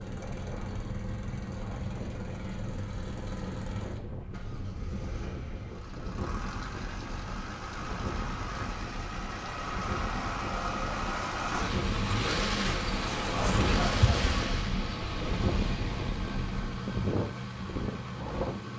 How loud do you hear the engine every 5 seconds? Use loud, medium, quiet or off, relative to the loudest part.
medium, medium, loud, medium.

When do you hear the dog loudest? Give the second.
14 s.